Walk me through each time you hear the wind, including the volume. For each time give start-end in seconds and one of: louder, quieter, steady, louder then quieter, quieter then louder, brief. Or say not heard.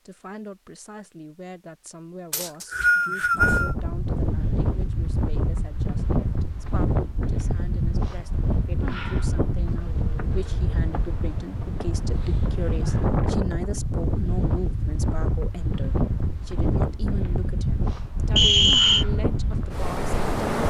3.4-20.6 steady.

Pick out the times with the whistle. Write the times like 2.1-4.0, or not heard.
2.3-3.8, 18.4-19.1.